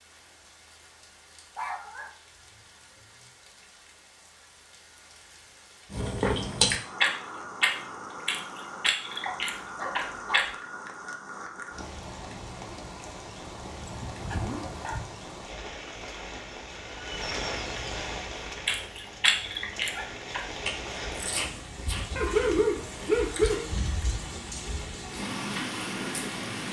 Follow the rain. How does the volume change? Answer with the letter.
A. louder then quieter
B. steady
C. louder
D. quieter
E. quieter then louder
C.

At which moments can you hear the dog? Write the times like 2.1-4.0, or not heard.
1.6-3.2, 9.2-10.6, 13.6-15.1, 22.1-24.1.